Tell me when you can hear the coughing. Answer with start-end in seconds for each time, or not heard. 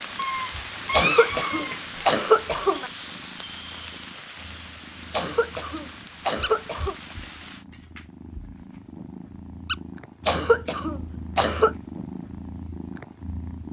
0.9-2.9, 5.1-7.0, 10.2-11.8.